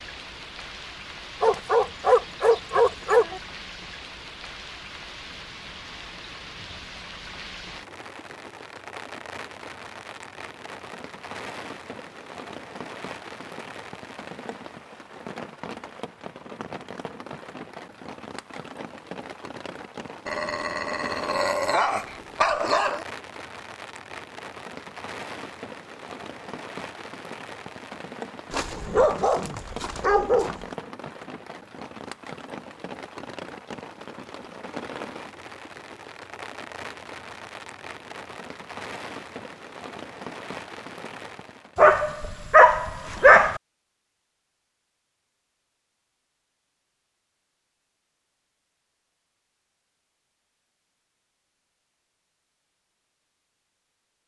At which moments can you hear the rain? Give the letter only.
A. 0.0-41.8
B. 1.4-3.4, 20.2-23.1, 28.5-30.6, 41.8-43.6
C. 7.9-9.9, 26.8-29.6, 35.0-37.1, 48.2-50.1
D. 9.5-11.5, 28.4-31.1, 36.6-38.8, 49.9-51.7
A.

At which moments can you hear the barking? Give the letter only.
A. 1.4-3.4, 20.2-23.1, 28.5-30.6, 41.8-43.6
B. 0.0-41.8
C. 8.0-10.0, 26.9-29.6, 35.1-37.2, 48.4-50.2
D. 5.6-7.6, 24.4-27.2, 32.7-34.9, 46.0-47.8
A.